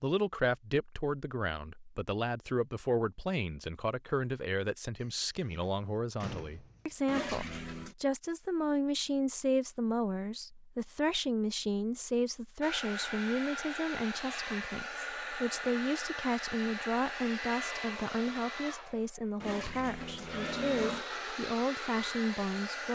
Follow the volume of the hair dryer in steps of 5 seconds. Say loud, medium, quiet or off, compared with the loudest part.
off, off, loud, loud, loud.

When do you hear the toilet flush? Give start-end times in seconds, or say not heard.
7.0-8.0, 19.4-21.1.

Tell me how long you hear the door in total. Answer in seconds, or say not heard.
2 s.